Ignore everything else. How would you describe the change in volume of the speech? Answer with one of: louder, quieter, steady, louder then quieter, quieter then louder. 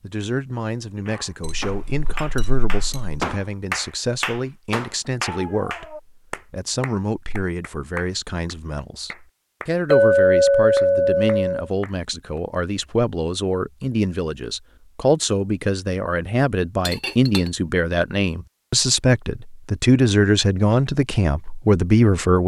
louder.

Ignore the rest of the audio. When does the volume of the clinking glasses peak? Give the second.
10 s.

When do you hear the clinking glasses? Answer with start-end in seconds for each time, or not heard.
1.4-3.2, 9.9-11.7, 16.9-17.5.